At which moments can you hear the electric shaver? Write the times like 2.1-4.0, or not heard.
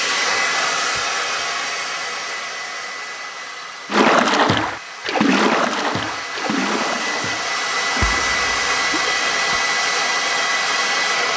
not heard.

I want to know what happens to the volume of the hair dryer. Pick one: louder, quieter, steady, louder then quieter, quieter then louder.
quieter then louder.